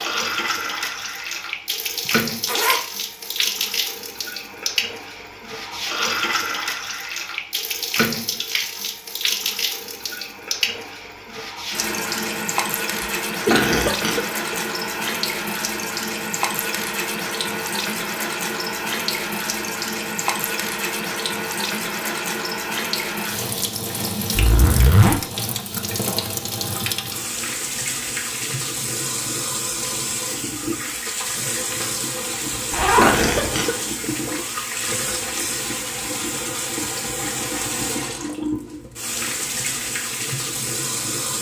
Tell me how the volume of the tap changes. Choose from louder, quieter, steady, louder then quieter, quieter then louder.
steady.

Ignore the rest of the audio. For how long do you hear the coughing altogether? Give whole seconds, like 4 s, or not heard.
3 s.